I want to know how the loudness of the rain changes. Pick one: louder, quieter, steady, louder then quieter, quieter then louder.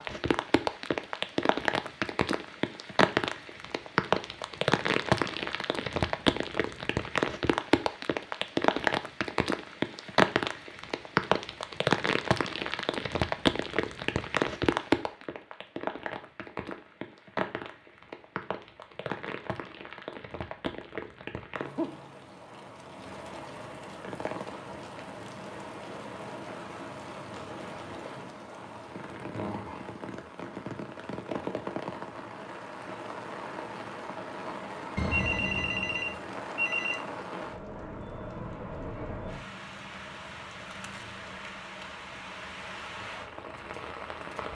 quieter.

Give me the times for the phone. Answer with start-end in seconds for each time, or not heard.
35.0-37.0.